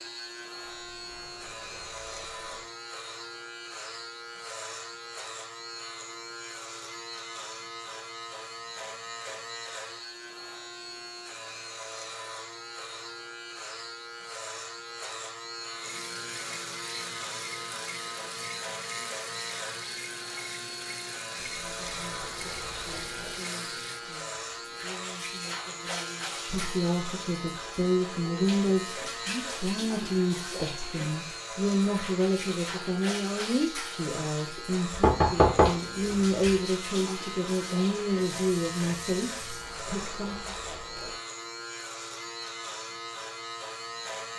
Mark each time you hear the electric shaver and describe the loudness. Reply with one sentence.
The electric shaver can be heard from 0.0 to 44.3 s, at a steady volume.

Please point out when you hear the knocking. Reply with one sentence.
The knocking can be heard from 35.0 to 36.4 s.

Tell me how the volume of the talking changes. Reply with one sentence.
The volume of the talking goes up.